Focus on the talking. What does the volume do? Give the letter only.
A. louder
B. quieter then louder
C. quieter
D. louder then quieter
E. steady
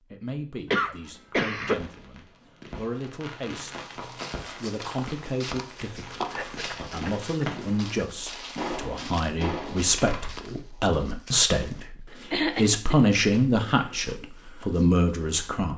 A.